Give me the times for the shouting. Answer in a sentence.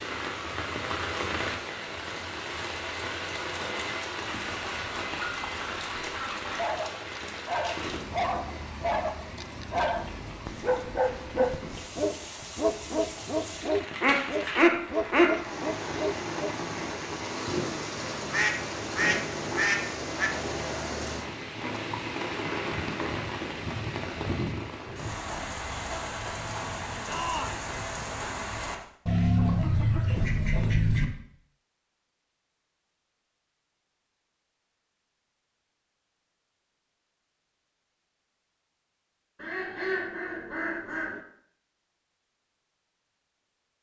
You can hear the shouting from 27.1 to 27.7 s.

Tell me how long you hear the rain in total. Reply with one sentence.
The rain can be heard for 29 seconds in total.